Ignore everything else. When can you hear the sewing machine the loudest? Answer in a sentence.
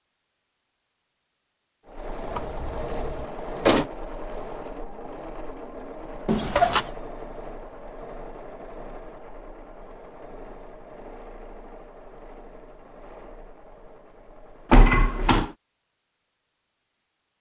The volume of the sewing machine peaks at 3 seconds.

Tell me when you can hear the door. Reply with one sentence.
The door can be heard from 2.3 to 3.9 s, from 6.2 to 6.8 s and from 14.7 to 15.5 s.